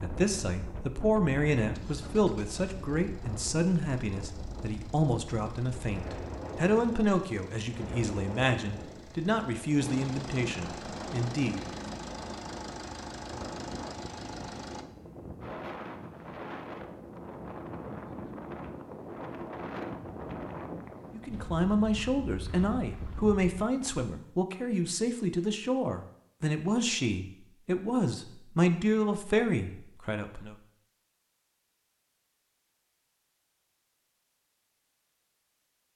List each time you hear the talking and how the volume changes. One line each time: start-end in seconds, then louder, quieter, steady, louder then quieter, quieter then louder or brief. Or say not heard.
0.0-11.6 steady
21.1-30.6 steady.